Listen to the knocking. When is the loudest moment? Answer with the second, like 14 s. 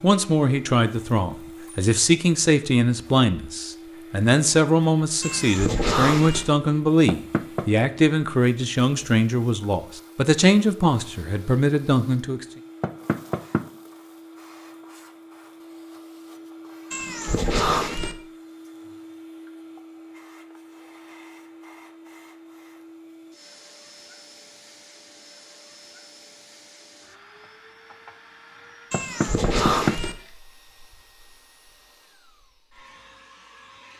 30 s.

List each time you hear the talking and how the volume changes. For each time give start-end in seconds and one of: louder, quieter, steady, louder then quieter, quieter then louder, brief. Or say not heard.
0.0-12.4 steady.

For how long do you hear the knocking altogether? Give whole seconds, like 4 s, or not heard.
3 s.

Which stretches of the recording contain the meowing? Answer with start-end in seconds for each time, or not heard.
5.2-6.5, 16.9-18.1, 28.9-30.1.